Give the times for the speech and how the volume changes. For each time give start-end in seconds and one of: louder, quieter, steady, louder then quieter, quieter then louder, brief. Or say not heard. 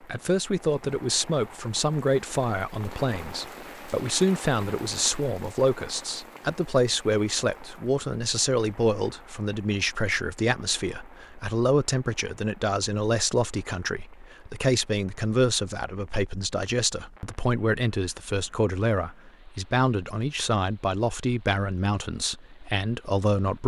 0.1-23.6 steady.